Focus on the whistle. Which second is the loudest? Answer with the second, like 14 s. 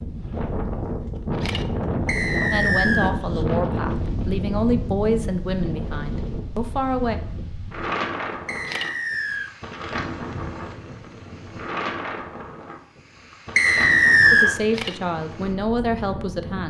14 s.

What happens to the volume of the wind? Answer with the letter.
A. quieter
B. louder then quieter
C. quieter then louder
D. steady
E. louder
A.